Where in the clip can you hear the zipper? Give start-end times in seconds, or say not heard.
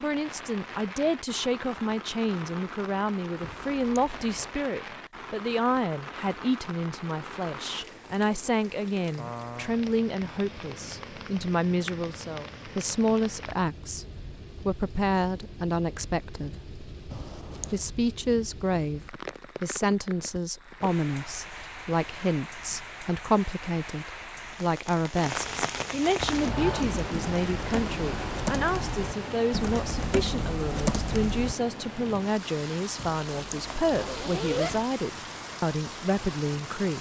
3.4-4.5, 17.1-17.8, 33.0-34.9.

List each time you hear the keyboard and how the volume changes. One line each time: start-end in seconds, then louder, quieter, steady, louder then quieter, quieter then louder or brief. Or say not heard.
26.1-31.6 louder.